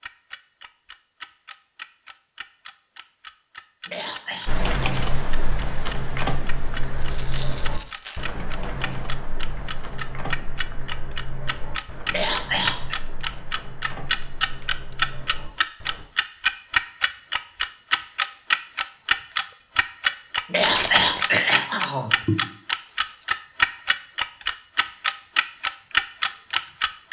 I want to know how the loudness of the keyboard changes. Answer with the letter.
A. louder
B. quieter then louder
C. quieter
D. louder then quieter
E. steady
C.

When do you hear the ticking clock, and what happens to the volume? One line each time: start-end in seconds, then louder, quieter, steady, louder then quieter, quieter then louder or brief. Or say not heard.
0.0-27.0 louder.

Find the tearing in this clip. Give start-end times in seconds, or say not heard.
7.0-8.2, 20.6-21.4.